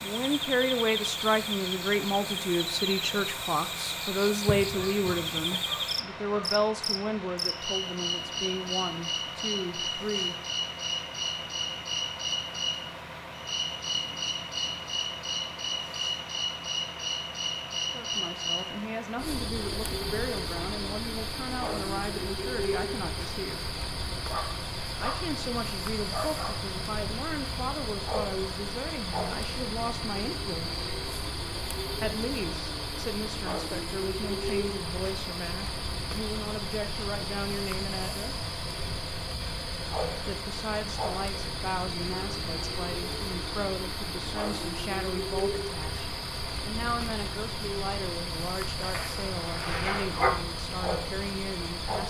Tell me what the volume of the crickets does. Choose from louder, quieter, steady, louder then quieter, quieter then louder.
steady.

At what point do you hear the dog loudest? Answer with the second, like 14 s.
50 s.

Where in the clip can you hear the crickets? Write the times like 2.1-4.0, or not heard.
0.0-52.0.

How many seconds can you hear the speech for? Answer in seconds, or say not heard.
40 s.